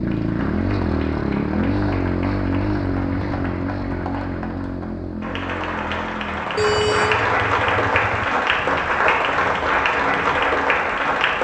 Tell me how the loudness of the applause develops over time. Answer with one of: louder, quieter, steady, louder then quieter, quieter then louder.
louder.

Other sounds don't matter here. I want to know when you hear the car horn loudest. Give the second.
7 s.